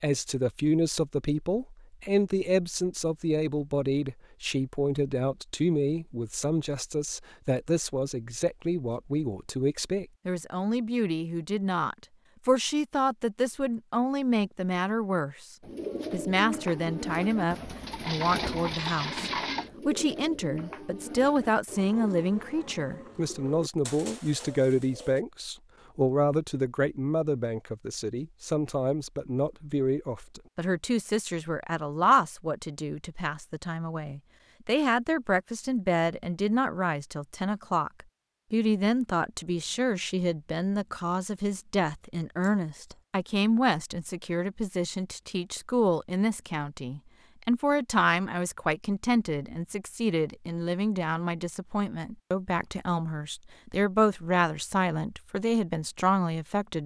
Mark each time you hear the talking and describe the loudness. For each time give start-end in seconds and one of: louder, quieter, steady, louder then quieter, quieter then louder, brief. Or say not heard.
0.0-56.8 steady.